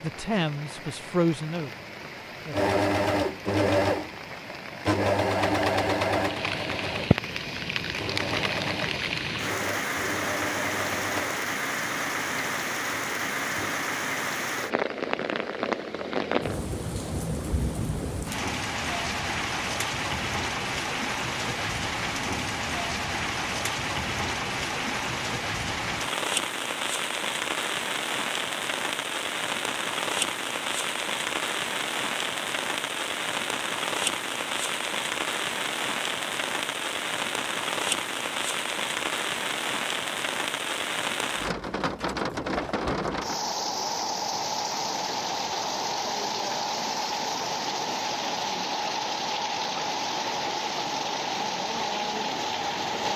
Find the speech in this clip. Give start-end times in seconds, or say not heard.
0.0-2.5.